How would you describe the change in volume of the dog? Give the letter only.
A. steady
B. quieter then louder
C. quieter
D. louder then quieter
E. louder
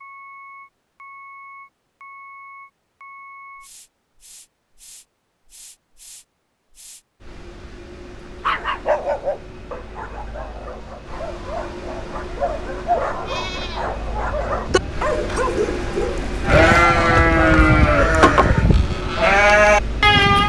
B.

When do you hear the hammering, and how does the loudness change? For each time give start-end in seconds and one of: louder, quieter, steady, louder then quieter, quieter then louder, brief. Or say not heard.
not heard.